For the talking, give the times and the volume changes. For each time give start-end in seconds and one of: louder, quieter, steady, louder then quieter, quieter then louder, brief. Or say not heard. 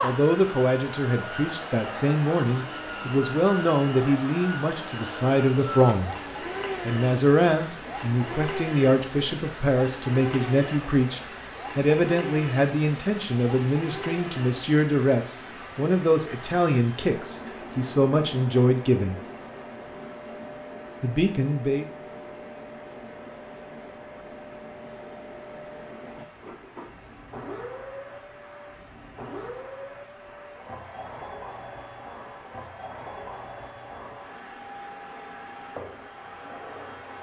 0.0-6.1 steady
6.8-19.1 steady
21.0-21.9 brief.